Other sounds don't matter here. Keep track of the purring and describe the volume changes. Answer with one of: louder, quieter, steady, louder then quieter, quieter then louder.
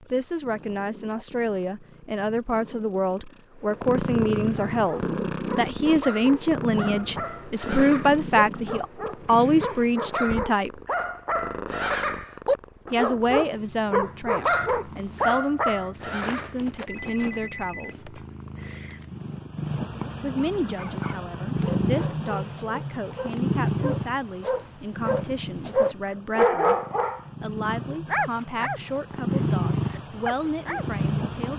quieter then louder.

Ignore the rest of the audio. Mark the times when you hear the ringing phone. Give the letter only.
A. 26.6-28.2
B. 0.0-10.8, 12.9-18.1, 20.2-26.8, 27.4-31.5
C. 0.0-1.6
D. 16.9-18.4
D.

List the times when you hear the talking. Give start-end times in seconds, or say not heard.
0.0-10.8, 12.9-18.1, 20.2-26.8, 27.4-31.5.